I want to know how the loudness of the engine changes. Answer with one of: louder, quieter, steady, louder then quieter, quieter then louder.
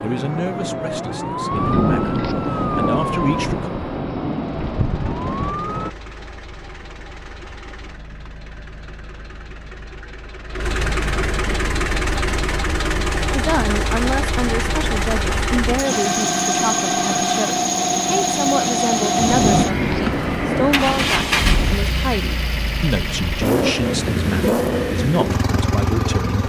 louder.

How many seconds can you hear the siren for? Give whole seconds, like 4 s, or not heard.
6 s.